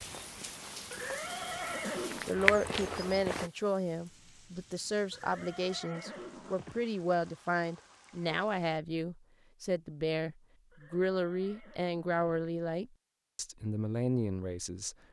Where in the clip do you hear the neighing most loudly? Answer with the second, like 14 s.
2 s.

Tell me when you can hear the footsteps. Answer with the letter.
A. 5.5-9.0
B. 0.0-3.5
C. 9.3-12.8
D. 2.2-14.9
B.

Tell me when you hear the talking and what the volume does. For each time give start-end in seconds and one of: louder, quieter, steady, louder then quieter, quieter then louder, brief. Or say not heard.
2.2-14.9 steady.